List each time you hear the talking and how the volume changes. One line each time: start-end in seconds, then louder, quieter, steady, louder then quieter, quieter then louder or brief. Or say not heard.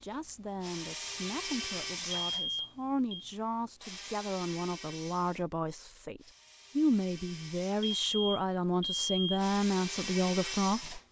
0.0-11.0 louder.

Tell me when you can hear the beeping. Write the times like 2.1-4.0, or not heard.
2.1-3.2, 7.8-9.4.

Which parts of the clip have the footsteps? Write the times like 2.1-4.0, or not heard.
not heard.